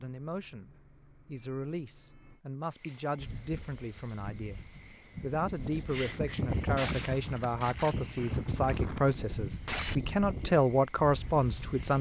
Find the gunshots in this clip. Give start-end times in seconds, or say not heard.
6.2-9.9.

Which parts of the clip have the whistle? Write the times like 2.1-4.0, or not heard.
not heard.